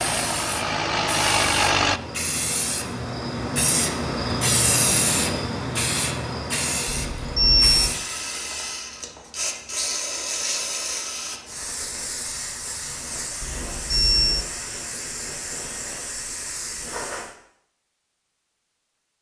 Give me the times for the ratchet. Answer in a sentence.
The ratchet can't be heard in this clip.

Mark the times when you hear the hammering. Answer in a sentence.
You can't hear the hammering here.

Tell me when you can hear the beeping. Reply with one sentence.
The beeping can be heard from 6.8 to 7.9 s and from 13.4 to 14.5 s.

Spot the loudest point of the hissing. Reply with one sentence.
The volume of the hissing peaks at 5 seconds.